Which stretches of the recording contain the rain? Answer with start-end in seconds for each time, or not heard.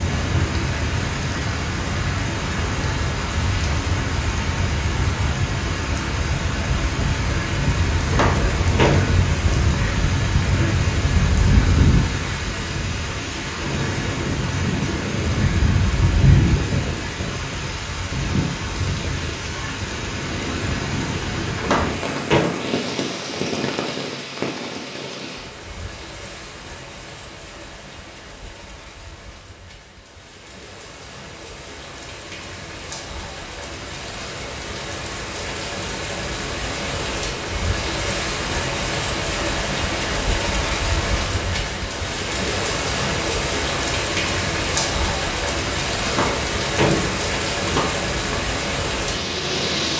0.0-49.9.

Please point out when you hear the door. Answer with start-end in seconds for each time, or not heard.
8.1-9.0, 21.6-22.4, 46.0-48.4.